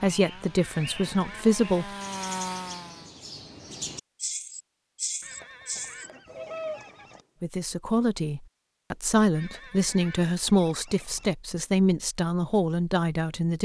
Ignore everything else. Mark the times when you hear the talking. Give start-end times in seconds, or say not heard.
0.0-1.9, 7.4-13.6.